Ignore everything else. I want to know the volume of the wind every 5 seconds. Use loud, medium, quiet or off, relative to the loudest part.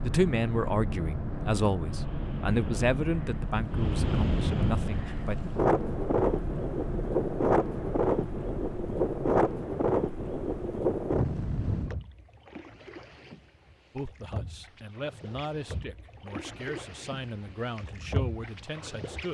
medium, loud, loud, off.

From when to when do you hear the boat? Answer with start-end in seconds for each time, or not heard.
0.0-19.2.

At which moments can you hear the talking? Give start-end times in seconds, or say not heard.
0.0-5.3, 13.9-19.2.